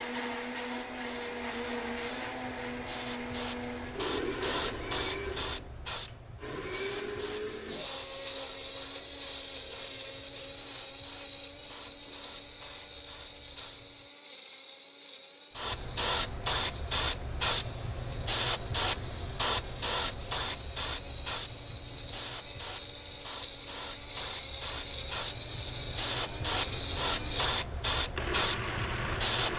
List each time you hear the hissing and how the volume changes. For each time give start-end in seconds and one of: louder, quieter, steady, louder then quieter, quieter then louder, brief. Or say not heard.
0.1-14.1 louder then quieter
15.6-29.5 quieter then louder.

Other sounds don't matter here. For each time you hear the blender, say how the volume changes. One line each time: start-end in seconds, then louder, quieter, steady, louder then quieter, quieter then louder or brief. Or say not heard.
0.0-29.5 quieter then louder.